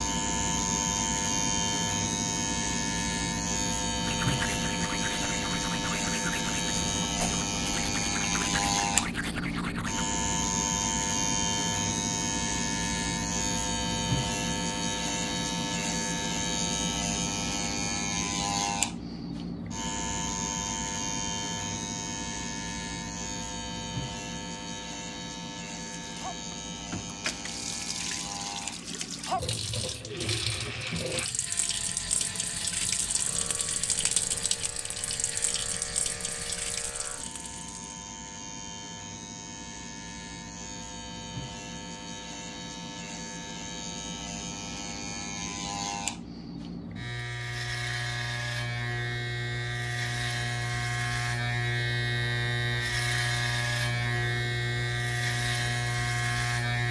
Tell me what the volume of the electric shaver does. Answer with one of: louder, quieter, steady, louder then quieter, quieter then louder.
quieter then louder.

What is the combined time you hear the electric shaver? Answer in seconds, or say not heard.
57 s.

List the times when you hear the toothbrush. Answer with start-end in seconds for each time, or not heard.
4.0-10.1.